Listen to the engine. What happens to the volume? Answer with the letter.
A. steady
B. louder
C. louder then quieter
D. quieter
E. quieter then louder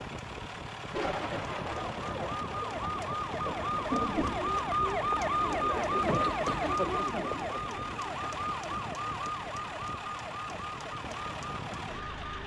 A.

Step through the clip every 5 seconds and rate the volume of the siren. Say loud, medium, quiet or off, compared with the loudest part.
loud, loud, medium.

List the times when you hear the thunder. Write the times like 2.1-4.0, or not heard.
0.9-4.4.